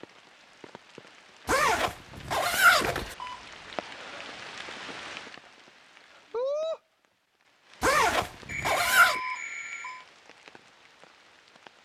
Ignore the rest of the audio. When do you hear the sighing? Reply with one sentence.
The sighing can't be heard in this clip.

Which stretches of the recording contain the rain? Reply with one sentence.
You can hear the rain from 0.0 to 11.8 s.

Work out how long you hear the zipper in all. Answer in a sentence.
You can hear the zipper for 3 seconds altogether.